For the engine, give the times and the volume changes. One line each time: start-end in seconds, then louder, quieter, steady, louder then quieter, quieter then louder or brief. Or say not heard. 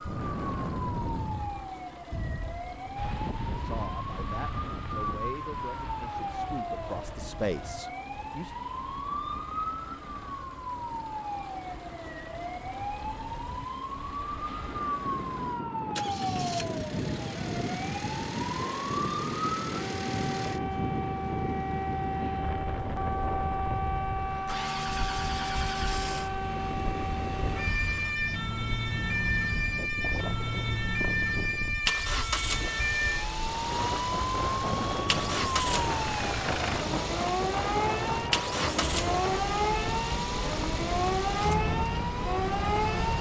0.0-43.1 louder.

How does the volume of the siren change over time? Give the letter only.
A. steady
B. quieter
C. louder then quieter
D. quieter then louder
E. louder
E.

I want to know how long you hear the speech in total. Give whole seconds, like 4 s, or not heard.
5 s.